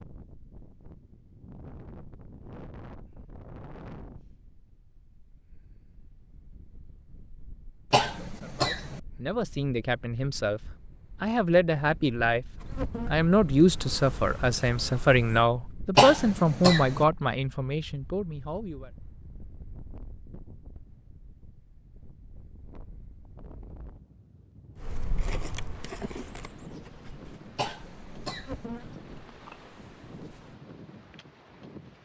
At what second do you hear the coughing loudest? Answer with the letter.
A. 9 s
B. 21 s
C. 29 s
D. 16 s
D.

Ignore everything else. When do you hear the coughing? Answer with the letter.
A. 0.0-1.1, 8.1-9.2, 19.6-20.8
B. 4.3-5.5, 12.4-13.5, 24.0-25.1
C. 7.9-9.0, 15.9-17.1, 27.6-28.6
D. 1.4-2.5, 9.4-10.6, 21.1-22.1
C.